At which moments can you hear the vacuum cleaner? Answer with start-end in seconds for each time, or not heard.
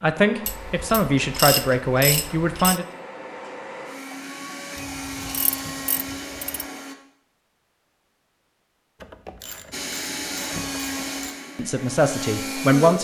0.1-7.0, 9.7-12.9.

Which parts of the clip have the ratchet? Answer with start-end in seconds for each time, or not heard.
0.5-2.8, 4.8-6.7, 9.0-11.3.